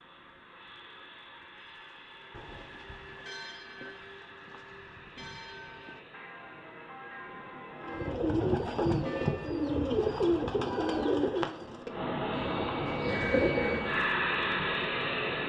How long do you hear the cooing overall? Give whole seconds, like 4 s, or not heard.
6 s.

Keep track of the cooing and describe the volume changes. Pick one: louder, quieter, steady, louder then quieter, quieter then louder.
quieter then louder.